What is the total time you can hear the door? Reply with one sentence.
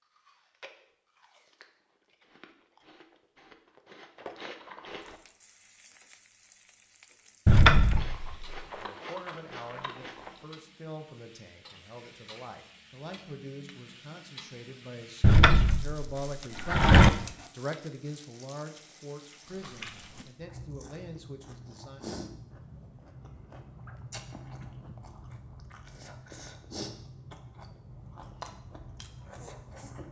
You can hear the door for 3 seconds altogether.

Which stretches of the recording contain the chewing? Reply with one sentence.
You can hear the chewing from 0.0 to 5.2 s, from 7.9 to 10.4 s and from 19.4 to 30.0 s.